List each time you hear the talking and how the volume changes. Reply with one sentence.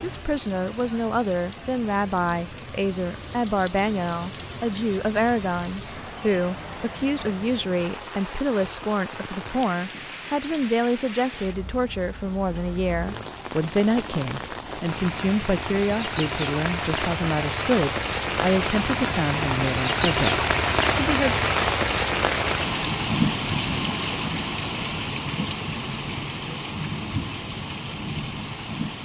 The talking can be heard from 0.0 to 21.4 s, at a steady volume.